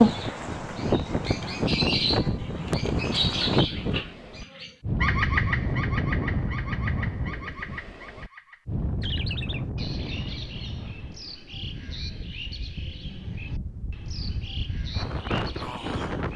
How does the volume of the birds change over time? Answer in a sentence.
The volume of the birds goes down.